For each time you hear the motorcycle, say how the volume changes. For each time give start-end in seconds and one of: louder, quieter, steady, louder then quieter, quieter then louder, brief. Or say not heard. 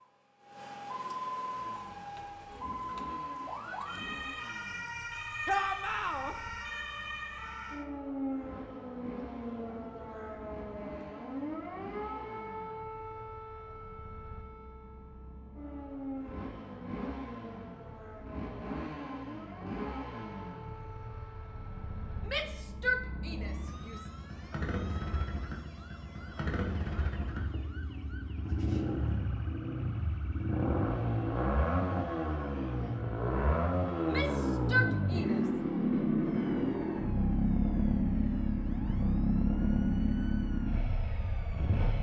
1.4-41.9 louder.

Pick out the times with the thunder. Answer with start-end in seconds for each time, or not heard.
not heard.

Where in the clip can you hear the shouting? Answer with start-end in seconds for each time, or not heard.
5.5-6.3, 22.2-24.1, 34.0-35.5.